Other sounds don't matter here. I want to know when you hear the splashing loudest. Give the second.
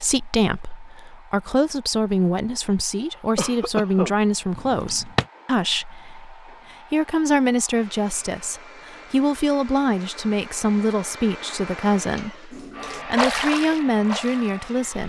13 s.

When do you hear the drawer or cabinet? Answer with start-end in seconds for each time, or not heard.
4.5-5.2.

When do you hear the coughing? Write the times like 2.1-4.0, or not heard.
3.4-4.2.